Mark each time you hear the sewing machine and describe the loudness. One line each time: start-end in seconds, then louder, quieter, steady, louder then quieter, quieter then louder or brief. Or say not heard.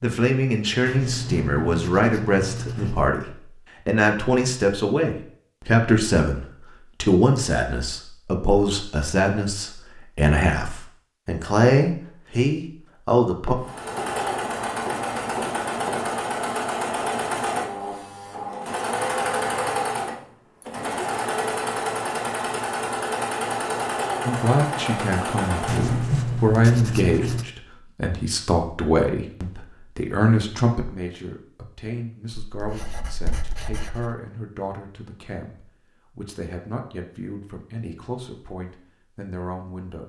13.6-26.1 steady.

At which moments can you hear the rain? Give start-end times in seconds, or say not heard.
not heard.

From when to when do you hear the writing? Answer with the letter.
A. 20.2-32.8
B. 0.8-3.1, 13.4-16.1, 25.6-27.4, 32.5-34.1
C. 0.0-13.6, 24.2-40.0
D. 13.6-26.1
B.